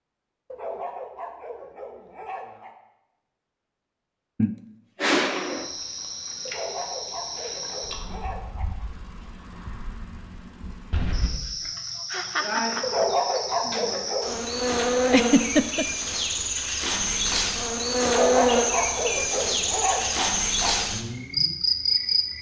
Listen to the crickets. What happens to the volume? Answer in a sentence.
The volume of the crickets goes up.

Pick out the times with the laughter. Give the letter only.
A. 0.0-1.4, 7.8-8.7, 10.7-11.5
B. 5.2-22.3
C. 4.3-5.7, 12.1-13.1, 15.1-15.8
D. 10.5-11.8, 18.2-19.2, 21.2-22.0
C.